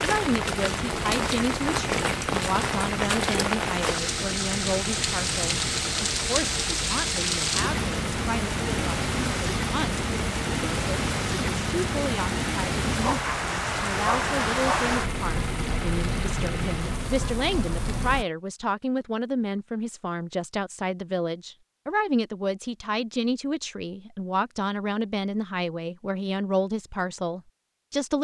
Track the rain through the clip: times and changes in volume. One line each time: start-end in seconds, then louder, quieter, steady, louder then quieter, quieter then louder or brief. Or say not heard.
0.0-18.2 steady.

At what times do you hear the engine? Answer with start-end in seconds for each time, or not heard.
0.0-17.1.